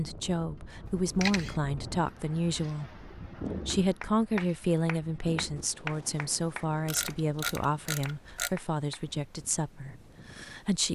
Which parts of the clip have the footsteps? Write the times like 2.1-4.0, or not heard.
not heard.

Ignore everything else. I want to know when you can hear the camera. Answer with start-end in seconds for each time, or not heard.
1.2-1.6, 6.8-8.6.